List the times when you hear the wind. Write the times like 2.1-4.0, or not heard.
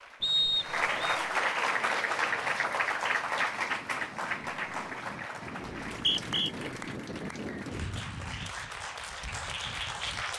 1.7-10.3.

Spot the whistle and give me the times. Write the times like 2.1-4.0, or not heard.
0.2-1.1, 5.9-6.5.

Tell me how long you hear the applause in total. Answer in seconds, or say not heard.
10 s.